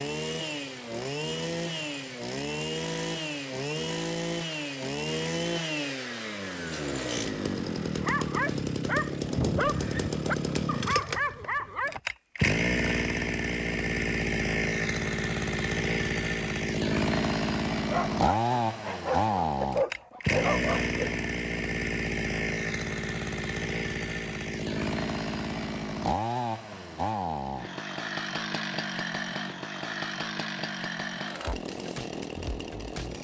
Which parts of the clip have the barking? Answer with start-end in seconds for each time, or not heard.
8.0-12.0, 17.9-21.2.